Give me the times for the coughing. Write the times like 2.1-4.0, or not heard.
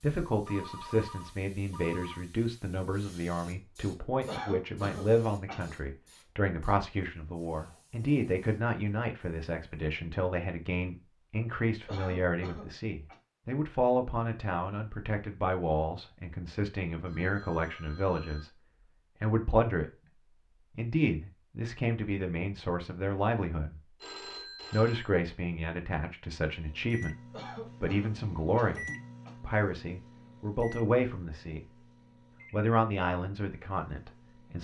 4.2-5.7, 11.8-13.2, 27.3-29.3.